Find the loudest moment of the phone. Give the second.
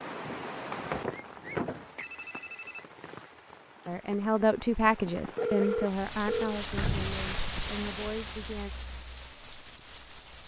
6 s.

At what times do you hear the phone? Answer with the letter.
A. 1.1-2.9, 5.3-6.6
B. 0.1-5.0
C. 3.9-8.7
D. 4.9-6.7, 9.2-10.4
A.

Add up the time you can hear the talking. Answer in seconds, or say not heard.
5 s.